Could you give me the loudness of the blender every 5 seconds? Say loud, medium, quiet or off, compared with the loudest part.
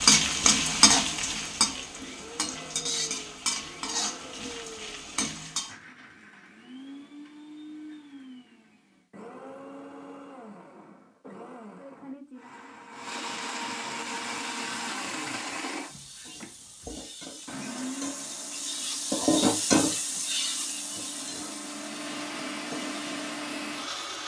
medium, medium, loud, loud, loud.